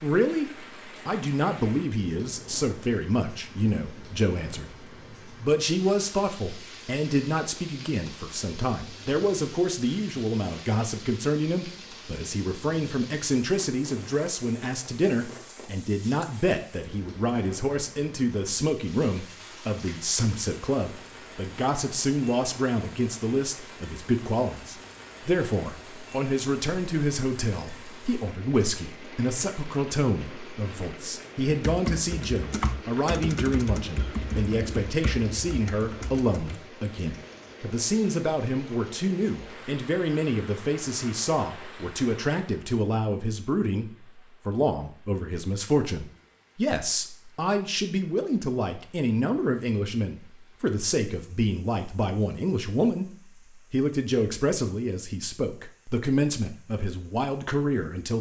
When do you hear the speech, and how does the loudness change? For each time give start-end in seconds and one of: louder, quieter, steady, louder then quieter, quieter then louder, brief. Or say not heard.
0.0-58.1 steady.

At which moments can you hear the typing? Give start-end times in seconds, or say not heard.
31.5-36.6.